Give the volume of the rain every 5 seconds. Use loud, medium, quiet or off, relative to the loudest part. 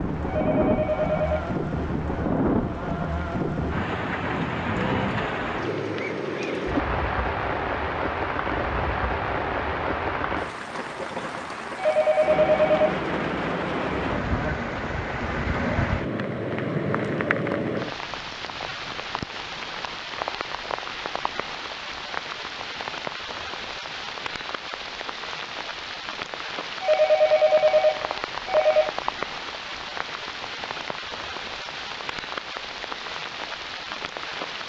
loud, loud, loud, loud, medium, medium, medium.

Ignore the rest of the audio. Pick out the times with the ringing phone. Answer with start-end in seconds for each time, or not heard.
0.2-1.4, 11.8-13.1, 26.8-28.9.